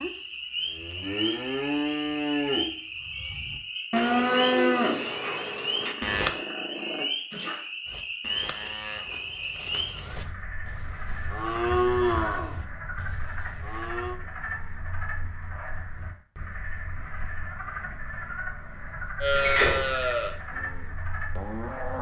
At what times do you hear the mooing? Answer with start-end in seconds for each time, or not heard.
0.0-6.3, 7.8-14.2, 19.2-21.9.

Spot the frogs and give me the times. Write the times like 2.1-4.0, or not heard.
0.0-21.9.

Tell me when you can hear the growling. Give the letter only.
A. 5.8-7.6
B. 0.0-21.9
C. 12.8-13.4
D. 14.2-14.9
A.